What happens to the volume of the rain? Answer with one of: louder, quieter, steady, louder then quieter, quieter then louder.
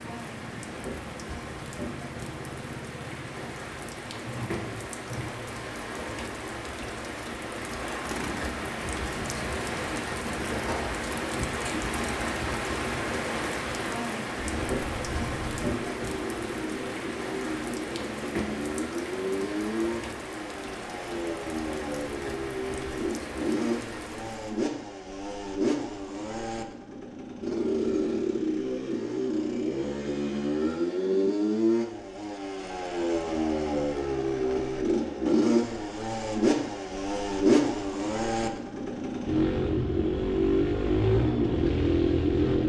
louder then quieter.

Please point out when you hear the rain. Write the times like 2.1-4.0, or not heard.
0.0-24.6.